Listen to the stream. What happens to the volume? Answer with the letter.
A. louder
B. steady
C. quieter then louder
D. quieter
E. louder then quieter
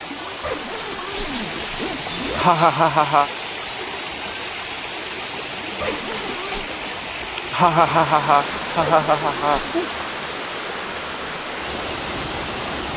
B.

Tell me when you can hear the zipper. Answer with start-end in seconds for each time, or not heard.
0.4-2.5, 5.8-6.7, 8.8-9.8.